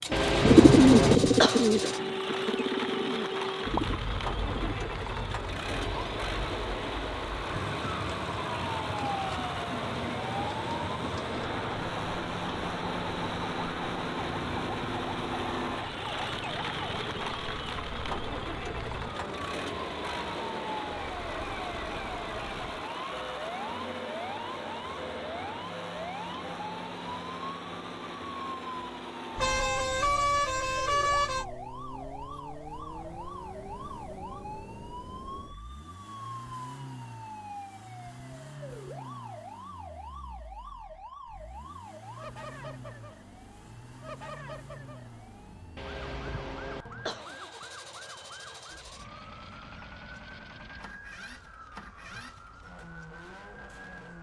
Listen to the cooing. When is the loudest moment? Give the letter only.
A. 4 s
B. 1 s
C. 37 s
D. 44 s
B.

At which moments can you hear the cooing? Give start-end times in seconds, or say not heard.
0.0-4.8.